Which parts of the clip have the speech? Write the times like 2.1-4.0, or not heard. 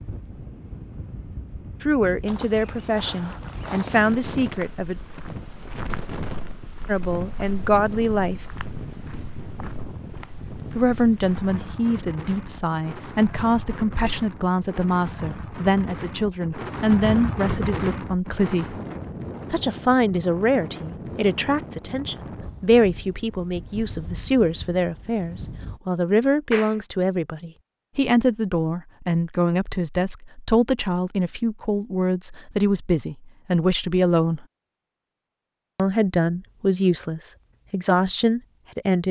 1.8-5.0, 6.8-8.4, 10.8-18.8, 19.5-34.5, 35.8-39.0.